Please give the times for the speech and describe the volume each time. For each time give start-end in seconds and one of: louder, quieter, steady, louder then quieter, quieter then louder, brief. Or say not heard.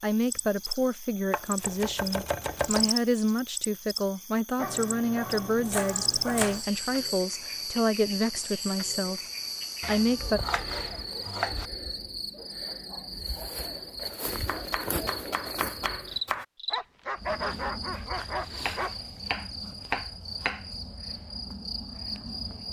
0.0-9.2 steady
9.8-10.4 brief.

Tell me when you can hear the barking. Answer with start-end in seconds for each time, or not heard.
4.5-6.6, 16.7-18.9.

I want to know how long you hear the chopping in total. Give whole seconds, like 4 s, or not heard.
9 s.